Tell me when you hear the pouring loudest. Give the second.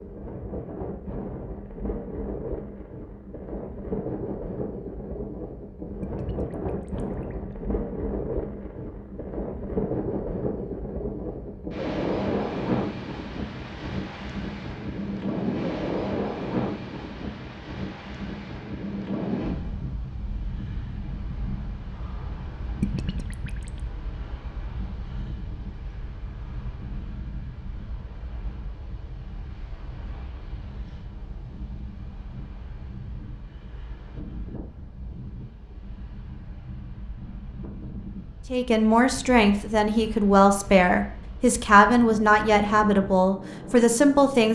23 s.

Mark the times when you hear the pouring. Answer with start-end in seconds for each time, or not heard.
6.0-7.5, 22.8-23.8.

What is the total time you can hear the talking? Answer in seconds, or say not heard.
6 s.